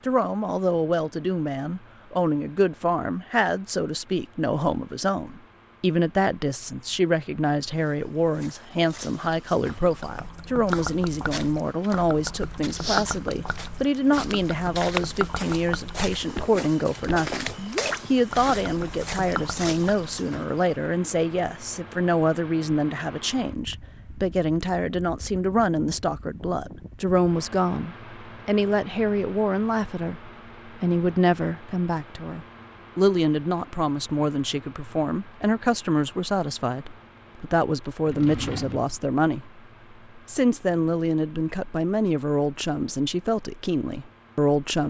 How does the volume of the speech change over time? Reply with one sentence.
The volume of the speech stays about the same.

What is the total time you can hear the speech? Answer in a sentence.
The speech can be heard for 45 seconds in total.